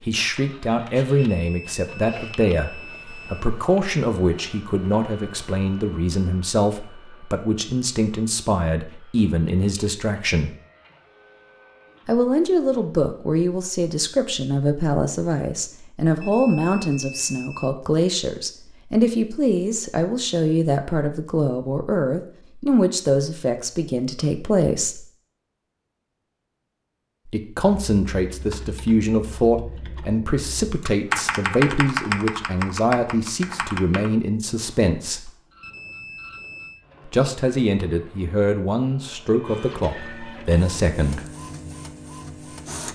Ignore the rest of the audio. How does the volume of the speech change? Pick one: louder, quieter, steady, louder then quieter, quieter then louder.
steady.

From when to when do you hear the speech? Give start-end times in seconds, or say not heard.
0.1-10.5, 12.1-25.1, 27.2-35.3, 37.0-41.2.